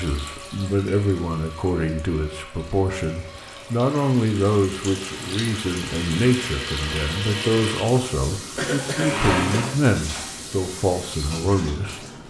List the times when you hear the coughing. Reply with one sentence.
The coughing can be heard from 8.6 to 9.8 s.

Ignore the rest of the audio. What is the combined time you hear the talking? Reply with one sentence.
The talking can be heard for 12 seconds in total.